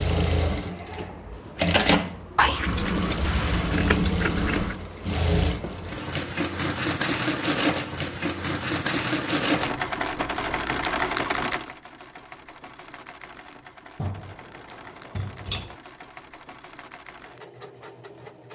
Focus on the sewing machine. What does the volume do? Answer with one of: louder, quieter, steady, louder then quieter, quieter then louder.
quieter.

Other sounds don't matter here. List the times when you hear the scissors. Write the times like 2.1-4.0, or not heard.
2.4-4.8, 13.9-15.8.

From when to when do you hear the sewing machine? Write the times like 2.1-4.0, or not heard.
0.0-18.5.